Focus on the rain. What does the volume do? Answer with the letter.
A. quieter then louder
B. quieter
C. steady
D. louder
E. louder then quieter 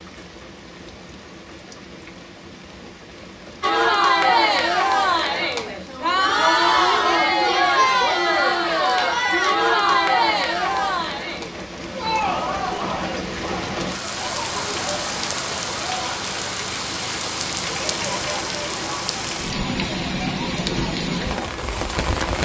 D.